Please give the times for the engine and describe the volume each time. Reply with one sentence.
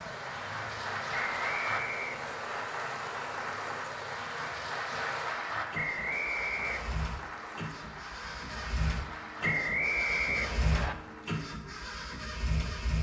You can hear the engine from 0.0 to 12.9 s, getting louder.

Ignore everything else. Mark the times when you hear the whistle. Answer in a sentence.
You can hear the whistle from 1.1 to 2.6 s, from 5.7 to 7.0 s and from 9.4 to 10.9 s.